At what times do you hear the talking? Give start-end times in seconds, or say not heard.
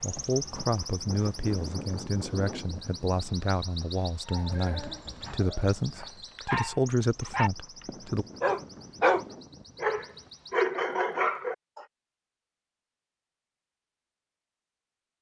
0.0-8.2.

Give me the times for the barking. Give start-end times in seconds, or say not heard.
4.2-11.8.